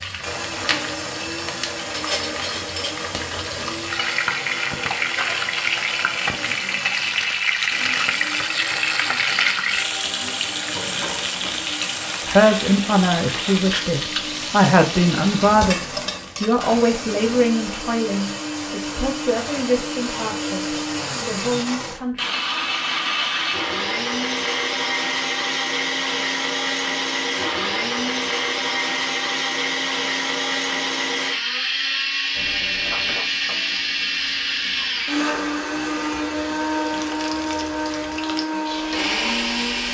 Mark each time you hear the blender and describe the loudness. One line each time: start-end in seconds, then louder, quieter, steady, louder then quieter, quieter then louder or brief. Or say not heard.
0.0-39.8 louder.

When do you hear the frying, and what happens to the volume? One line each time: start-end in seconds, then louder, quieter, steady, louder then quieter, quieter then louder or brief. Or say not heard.
0.0-16.8 louder then quieter
32.4-39.8 quieter then louder.